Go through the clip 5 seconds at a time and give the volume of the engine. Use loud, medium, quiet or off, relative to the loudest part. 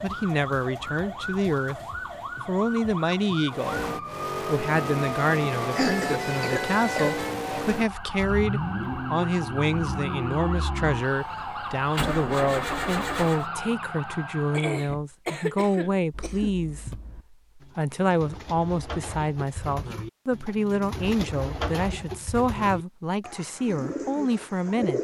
loud, loud, loud, off, off.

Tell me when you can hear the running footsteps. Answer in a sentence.
You can't hear the running footsteps here.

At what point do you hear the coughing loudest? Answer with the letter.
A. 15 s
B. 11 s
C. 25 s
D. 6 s
D.